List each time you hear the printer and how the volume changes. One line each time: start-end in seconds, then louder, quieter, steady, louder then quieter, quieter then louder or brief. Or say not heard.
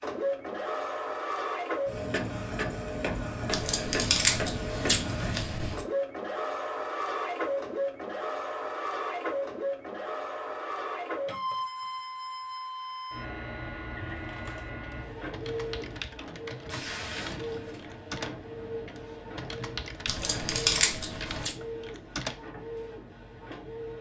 0.0-23.9 quieter.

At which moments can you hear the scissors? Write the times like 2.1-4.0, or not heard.
3.5-5.8, 20.1-21.6.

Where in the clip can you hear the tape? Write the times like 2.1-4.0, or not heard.
16.6-17.9.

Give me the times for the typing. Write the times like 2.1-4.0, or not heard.
14.1-22.4.